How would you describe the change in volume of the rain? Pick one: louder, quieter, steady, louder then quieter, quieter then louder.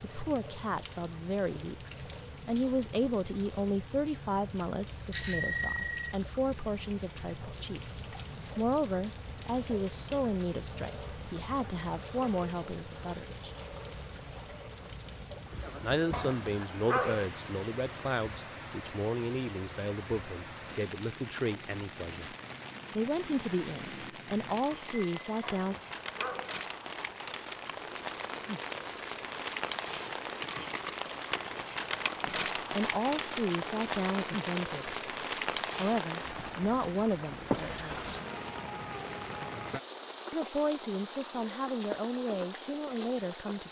louder.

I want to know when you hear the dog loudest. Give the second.
17 s.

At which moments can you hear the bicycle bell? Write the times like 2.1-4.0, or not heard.
5.1-6.1, 24.9-25.4.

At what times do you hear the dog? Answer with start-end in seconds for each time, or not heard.
16.1-17.3, 25.4-26.6.